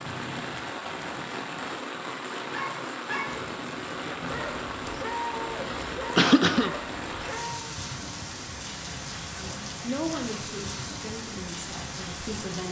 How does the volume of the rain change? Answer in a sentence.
The loudness of the rain stays about the same.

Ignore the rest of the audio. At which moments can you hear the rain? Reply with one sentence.
The rain can be heard from 0.0 to 12.6 s.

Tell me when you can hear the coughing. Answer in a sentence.
The coughing can be heard from 5.6 to 6.8 s.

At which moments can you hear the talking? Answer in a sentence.
You can hear the talking from 9.3 to 12.6 s.